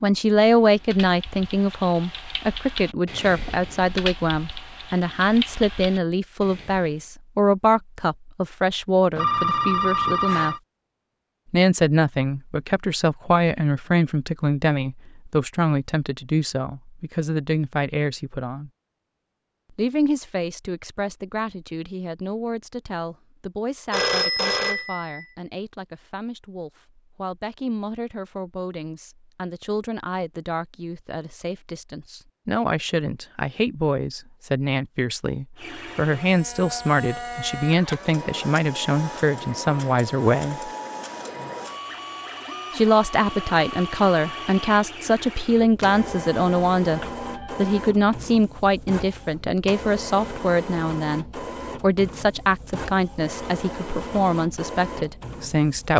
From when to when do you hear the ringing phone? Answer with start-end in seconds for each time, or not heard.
9.2-10.6, 23.9-25.2, 46.0-47.9.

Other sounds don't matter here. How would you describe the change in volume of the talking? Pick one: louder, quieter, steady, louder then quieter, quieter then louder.
quieter then louder.